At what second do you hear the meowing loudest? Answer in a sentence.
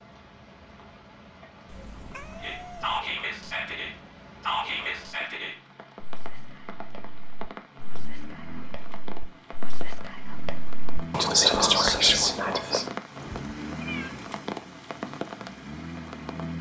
The volume of the meowing peaks at 14 seconds.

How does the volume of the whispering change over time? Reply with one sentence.
The loudness of the whispering goes down, then up.